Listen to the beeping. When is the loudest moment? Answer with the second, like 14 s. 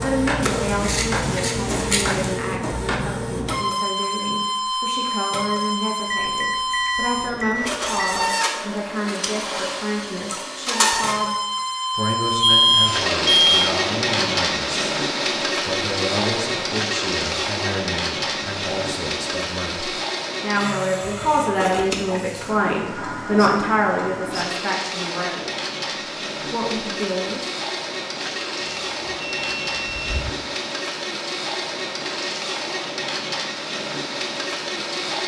13 s.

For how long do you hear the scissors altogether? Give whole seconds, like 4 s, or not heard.
2 s.